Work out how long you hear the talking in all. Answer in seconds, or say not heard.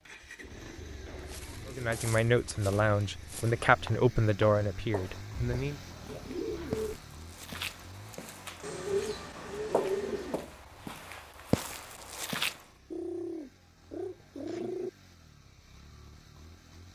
4 s.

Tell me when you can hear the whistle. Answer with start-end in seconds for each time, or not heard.
not heard.